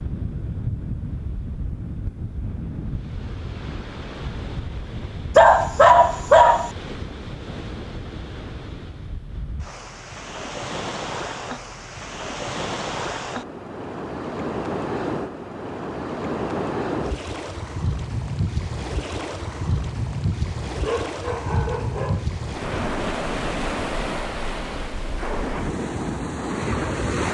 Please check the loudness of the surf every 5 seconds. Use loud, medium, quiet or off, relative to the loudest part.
medium, medium, loud, loud, loud, loud.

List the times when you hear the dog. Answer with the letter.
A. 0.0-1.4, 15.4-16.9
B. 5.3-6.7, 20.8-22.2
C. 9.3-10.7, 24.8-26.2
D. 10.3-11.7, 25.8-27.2
B.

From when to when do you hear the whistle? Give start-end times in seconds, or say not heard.
not heard.